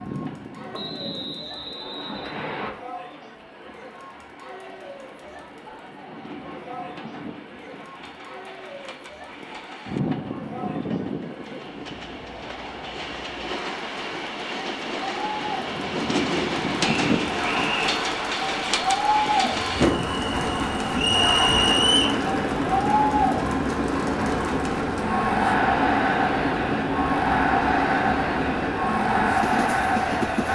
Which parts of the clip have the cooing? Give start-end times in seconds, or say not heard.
not heard.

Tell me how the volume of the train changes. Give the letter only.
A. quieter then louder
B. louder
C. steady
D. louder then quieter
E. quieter
B.